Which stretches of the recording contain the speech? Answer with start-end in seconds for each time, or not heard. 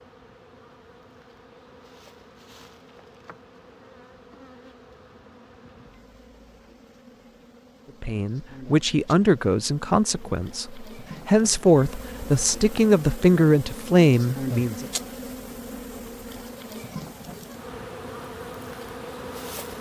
8.0-14.8.